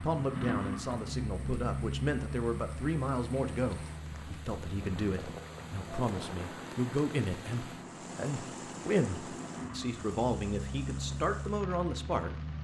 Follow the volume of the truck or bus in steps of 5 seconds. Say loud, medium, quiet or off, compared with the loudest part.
loud, medium, loud.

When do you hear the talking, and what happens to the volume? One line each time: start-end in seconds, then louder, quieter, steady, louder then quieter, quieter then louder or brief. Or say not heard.
0.0-12.3 steady.